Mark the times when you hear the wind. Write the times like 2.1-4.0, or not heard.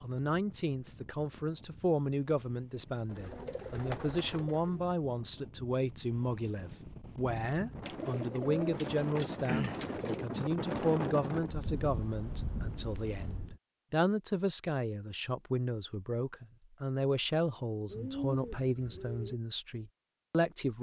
0.0-13.6.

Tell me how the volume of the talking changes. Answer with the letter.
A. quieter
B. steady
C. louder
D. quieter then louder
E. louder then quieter
B.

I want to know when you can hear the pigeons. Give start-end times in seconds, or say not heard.
3.1-4.8, 7.8-10.2, 17.9-19.4.